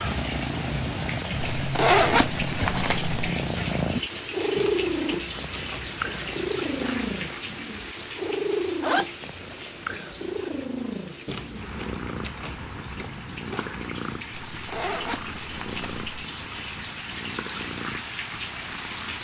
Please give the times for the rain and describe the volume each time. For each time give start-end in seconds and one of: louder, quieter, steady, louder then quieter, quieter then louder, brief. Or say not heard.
0.0-19.1 quieter then louder.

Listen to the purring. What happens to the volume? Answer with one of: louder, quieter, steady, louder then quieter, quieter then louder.
quieter.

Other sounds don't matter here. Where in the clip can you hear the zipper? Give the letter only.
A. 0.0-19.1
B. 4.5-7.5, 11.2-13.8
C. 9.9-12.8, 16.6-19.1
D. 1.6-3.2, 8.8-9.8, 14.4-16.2
D.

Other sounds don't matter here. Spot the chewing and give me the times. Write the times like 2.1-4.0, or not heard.
4.5-7.5, 11.2-13.8.